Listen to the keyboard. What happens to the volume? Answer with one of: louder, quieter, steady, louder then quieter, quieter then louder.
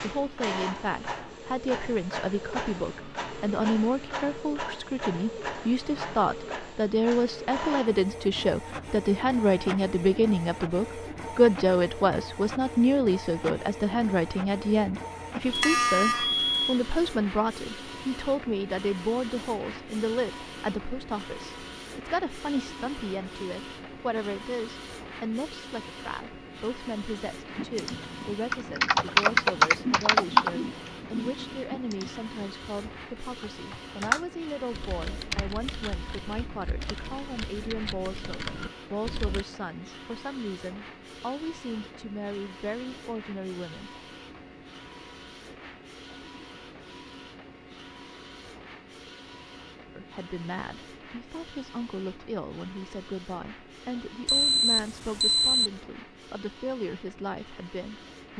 quieter.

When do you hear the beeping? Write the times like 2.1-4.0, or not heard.
15.5-16.6, 54.2-55.7.